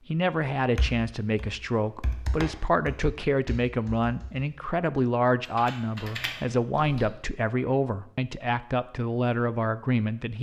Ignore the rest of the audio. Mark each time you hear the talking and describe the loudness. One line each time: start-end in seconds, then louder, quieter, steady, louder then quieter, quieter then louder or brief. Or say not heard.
0.1-10.3 steady.